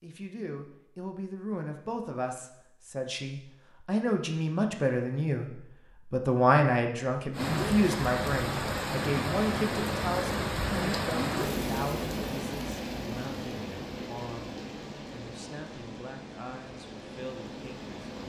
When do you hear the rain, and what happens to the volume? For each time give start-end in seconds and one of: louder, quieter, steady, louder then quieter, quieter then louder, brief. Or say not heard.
7.3-18.2 quieter.